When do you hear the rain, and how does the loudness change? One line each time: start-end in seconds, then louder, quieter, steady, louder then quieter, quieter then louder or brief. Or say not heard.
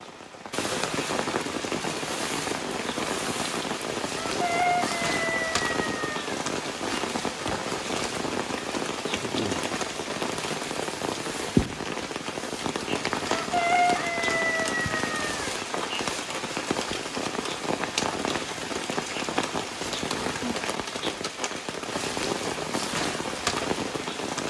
0.0-24.4 steady.